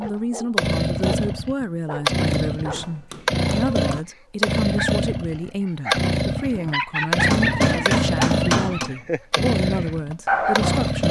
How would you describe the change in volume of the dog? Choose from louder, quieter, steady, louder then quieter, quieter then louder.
louder.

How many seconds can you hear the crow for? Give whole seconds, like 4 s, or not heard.
not heard.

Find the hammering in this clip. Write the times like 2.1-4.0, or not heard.
2.5-4.0, 7.3-8.9.